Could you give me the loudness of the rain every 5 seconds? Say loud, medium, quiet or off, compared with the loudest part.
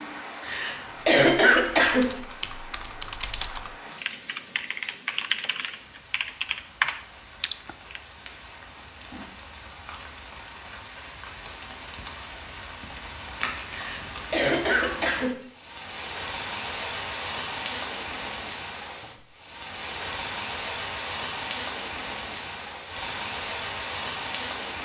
medium, quiet, medium, loud, loud.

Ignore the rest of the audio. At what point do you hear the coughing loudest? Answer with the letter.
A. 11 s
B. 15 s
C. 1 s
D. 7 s
C.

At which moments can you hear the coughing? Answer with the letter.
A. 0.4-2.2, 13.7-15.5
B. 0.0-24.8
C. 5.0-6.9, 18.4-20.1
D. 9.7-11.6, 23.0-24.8
A.